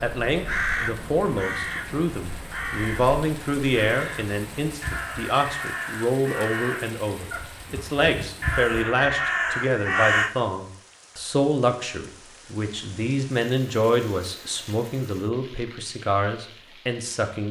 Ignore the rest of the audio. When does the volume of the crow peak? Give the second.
10 s.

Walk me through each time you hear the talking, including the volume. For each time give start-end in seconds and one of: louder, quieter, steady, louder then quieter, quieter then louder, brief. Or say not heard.
0.0-17.4 steady.